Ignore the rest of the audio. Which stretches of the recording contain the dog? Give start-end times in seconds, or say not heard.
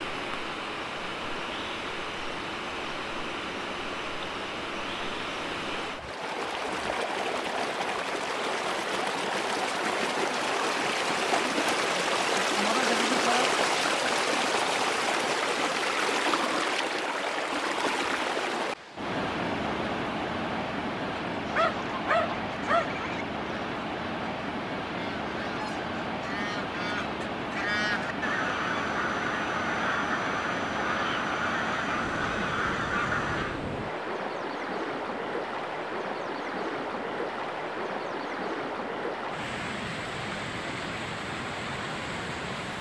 21.1-23.0.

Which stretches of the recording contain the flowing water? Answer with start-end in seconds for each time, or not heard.
0.0-42.7.